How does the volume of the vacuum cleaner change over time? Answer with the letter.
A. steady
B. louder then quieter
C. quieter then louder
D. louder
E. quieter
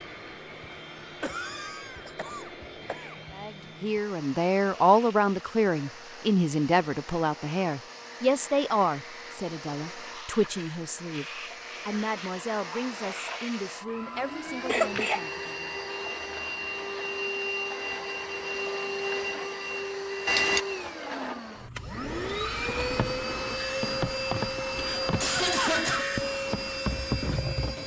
D.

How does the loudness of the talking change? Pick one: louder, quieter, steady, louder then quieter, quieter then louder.
quieter.